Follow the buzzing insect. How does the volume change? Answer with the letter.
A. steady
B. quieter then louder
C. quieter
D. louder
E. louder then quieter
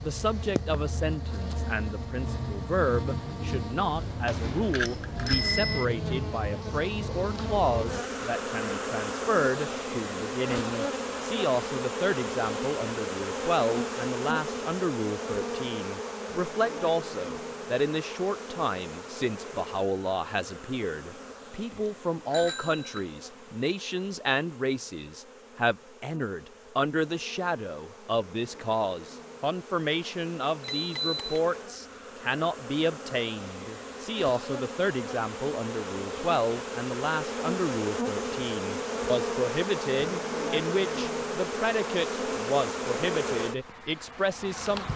B.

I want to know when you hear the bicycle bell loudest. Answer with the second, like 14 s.
5 s.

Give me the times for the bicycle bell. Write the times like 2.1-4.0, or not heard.
4.2-5.8, 21.1-23.1, 30.6-31.2.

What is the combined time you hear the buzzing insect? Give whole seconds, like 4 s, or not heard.
45 s.